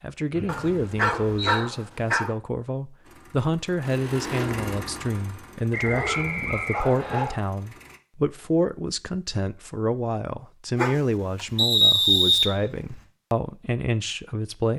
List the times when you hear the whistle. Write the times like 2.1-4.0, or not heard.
0.3-1.6, 5.7-7.2, 11.6-13.0.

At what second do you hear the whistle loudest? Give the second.
12 s.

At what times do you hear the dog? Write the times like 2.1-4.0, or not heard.
0.5-2.4, 5.8-7.5, 10.8-11.7.